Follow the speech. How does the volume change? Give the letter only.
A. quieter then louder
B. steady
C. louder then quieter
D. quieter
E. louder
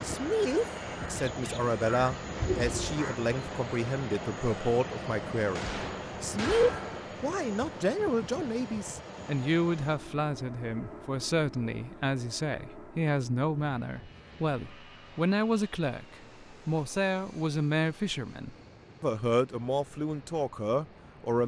B.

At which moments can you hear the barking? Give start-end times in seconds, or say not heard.
not heard.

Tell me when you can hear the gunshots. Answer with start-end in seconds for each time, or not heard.
5.5-7.1.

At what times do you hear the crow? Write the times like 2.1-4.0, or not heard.
0.0-3.1.